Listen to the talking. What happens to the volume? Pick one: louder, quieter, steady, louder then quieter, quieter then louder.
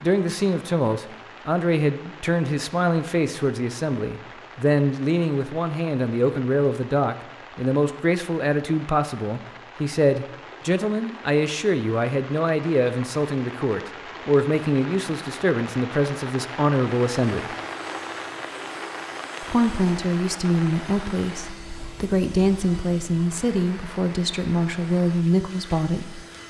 steady.